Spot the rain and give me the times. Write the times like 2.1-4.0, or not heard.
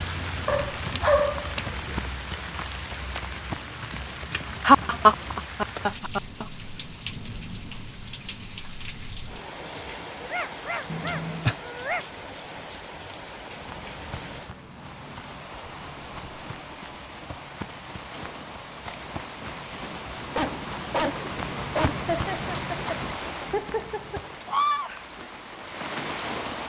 0.0-26.6.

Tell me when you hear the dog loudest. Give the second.
1 s.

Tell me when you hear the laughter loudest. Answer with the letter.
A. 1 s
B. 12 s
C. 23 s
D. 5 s
D.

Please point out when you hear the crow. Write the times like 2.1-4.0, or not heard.
not heard.